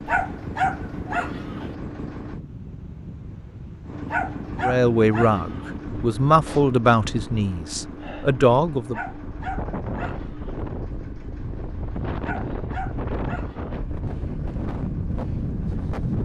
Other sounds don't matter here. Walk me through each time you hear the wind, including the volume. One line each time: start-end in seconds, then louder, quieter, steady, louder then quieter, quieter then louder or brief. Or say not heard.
0.0-16.1 louder.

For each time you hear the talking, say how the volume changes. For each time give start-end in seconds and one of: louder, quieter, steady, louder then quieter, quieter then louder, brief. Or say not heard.
4.6-9.0 quieter then louder.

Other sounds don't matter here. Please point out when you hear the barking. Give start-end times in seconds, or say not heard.
0.1-1.7, 4.1-5.7, 8.9-10.6, 12.2-13.7.